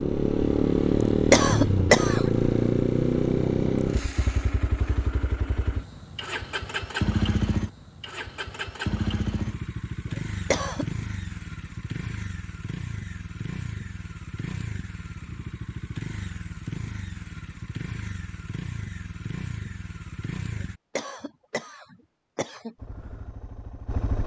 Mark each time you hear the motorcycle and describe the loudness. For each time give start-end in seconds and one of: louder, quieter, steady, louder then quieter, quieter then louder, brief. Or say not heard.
0.0-20.8 quieter
22.8-24.2 brief.